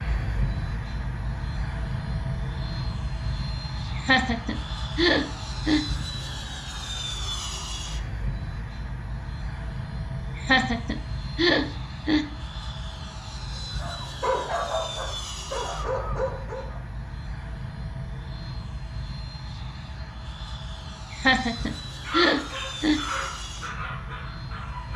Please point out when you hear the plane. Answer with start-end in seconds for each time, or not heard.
0.0-24.9.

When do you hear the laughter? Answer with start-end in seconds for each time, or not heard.
4.0-5.8, 10.3-12.2, 21.1-23.0.